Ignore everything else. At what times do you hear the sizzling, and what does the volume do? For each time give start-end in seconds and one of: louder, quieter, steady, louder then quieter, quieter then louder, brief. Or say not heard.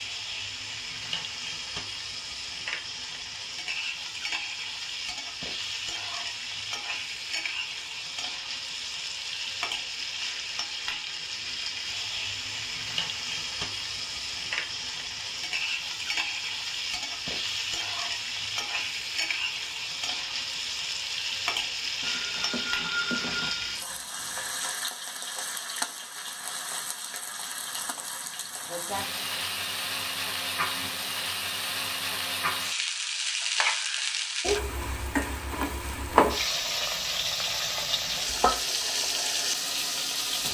0.0-40.4 louder.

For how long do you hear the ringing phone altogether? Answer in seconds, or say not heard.
2 s.